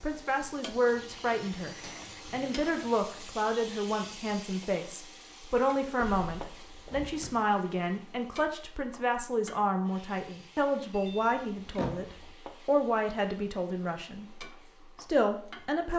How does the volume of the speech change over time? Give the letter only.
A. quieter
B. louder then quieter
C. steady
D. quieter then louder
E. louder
C.